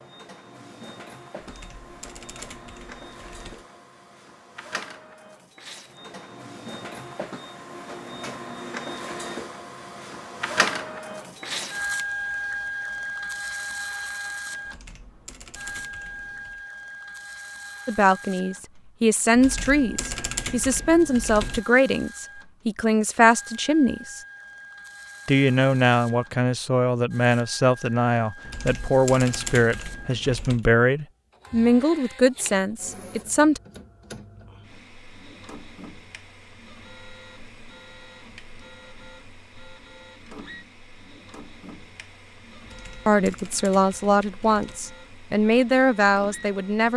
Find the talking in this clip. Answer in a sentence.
The talking can be heard from 17.9 to 24.2 s, from 25.2 to 33.6 s and from 43.0 to 46.9 s.